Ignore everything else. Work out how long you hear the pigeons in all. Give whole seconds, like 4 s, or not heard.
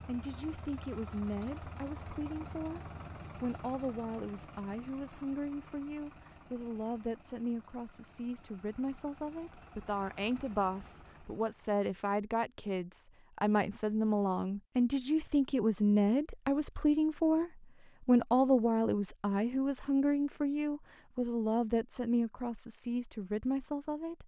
not heard.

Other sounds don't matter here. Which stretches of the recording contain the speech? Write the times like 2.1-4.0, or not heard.
0.1-24.2.